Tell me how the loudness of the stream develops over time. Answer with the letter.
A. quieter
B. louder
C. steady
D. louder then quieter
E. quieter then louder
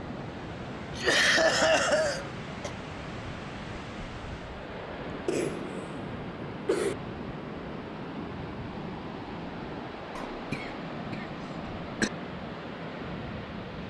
C.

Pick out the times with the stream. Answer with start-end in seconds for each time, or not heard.
0.0-13.8.